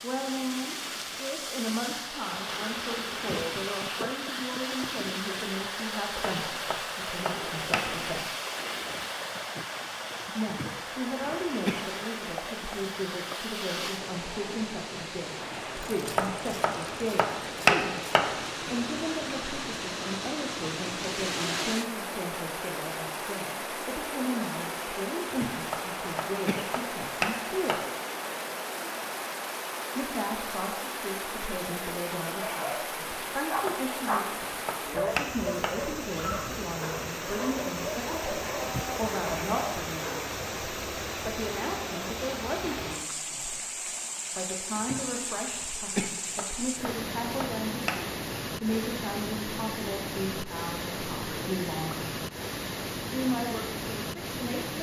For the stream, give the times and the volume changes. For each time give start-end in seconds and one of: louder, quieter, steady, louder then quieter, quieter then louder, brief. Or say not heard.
0.0-54.7 steady.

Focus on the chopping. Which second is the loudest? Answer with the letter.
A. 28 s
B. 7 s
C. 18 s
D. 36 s
C.